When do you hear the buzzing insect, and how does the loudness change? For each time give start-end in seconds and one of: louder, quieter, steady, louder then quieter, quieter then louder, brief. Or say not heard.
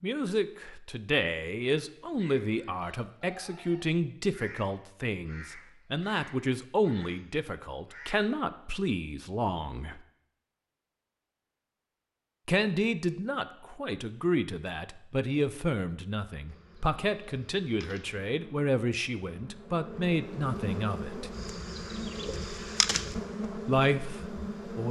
16.4-24.8 louder.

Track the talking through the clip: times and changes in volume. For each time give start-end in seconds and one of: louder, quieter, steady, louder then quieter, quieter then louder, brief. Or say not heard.
0.0-10.0 steady
12.4-21.3 steady
23.5-24.8 brief.